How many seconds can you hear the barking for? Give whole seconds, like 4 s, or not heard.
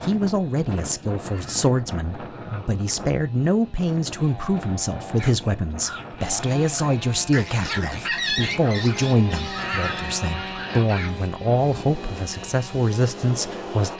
6 s.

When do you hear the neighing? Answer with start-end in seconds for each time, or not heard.
1.1-1.9, 9.3-10.1.